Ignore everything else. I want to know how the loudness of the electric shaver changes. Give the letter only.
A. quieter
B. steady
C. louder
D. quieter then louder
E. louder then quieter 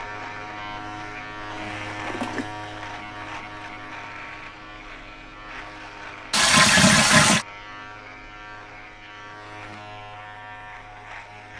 A.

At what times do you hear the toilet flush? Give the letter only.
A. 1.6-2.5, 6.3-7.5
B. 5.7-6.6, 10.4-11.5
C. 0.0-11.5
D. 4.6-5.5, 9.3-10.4
A.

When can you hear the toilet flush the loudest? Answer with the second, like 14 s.
7 s.